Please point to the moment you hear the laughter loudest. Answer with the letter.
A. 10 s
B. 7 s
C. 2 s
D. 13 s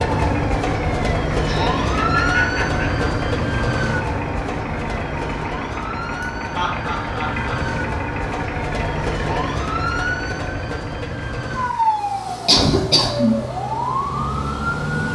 D.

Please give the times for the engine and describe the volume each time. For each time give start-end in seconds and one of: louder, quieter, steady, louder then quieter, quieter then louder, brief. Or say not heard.
0.0-15.1 quieter.